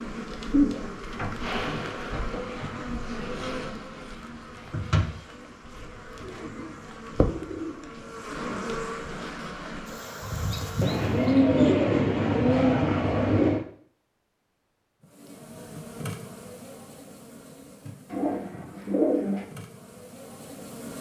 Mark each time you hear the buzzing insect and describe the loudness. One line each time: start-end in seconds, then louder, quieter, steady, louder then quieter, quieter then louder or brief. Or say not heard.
0.0-11.3 steady
15.0-20.9 quieter then louder.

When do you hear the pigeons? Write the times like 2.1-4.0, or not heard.
0.5-2.9, 6.2-8.1, 10.8-13.7, 18.1-19.4.